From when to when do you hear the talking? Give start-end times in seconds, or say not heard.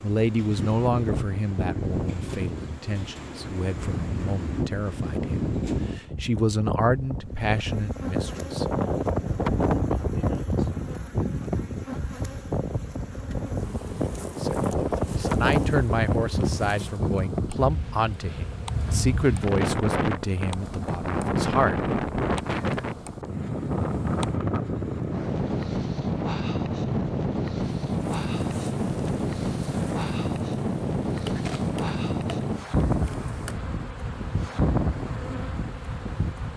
0.0-9.2, 14.2-21.9.